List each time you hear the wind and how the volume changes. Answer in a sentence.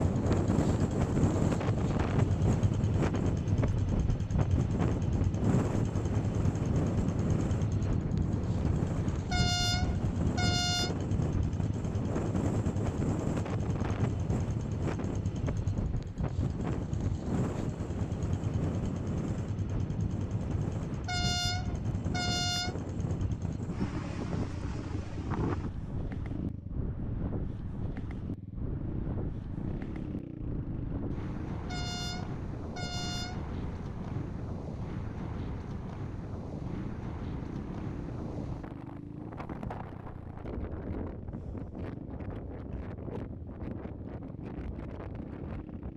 You can hear the wind from 0.0 to 45.9 s, getting quieter.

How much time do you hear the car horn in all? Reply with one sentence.
The car horn can be heard for 5 seconds in total.